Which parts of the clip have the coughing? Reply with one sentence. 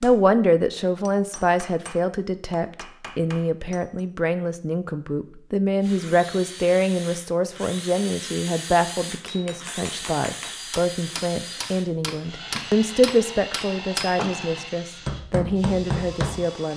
You can't hear the coughing here.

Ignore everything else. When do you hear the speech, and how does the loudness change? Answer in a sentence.
The speech can be heard from 0.0 to 16.7 s, at a steady volume.